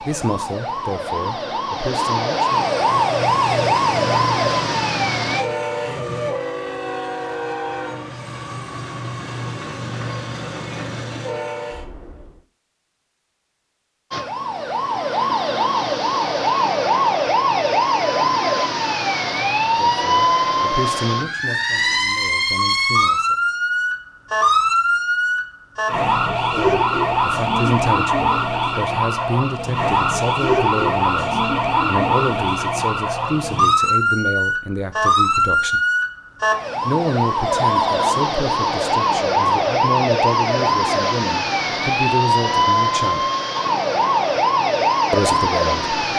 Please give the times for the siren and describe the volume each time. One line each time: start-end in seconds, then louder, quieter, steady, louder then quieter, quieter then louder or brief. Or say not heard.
0.0-5.5 louder
14.1-46.1 steady.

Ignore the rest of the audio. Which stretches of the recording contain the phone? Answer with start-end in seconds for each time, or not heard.
37.5-38.1.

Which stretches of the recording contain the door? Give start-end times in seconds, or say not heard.
not heard.